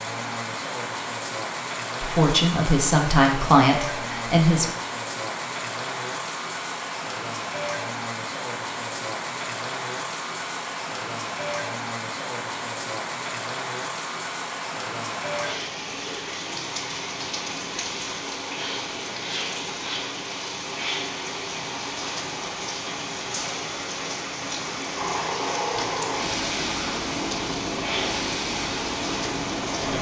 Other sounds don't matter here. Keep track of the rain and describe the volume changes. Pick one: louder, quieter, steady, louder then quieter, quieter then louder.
steady.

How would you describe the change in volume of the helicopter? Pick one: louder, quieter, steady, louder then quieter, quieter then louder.
steady.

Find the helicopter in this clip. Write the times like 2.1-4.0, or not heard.
24.9-29.9.